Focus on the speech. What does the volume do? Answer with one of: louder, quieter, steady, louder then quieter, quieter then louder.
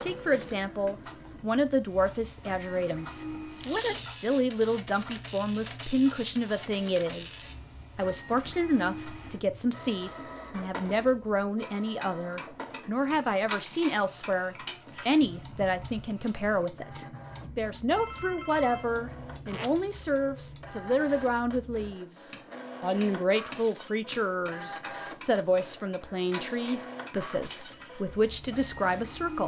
steady.